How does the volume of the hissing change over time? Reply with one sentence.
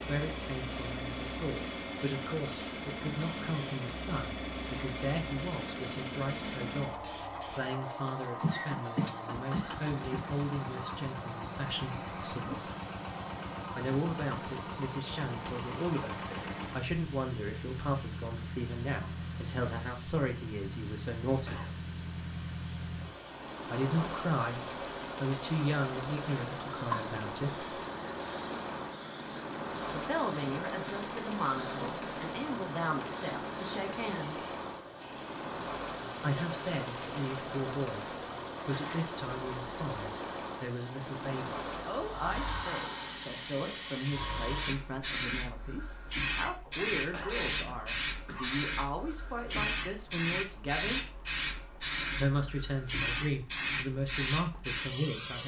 The volume of the hissing goes up.